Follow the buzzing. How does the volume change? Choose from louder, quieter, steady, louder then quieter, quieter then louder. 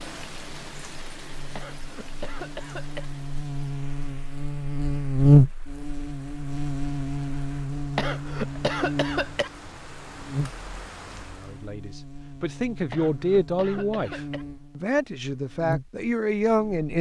louder then quieter.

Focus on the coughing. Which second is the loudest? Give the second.
9 s.